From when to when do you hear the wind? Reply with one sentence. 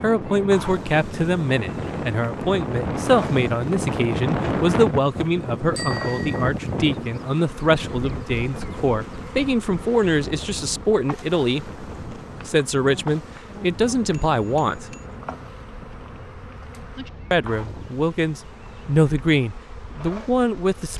The wind can be heard from 0.0 to 20.9 s.